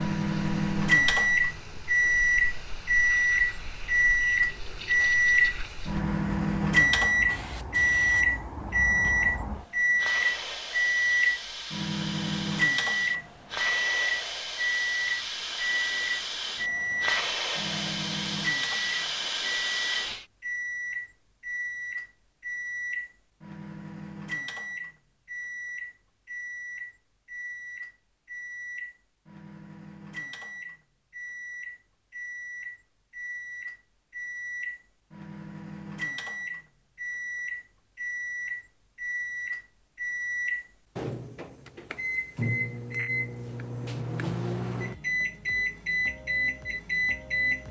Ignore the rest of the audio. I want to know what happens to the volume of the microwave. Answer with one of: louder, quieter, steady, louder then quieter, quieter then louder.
quieter then louder.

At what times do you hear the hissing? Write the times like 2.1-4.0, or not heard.
0.0-20.2.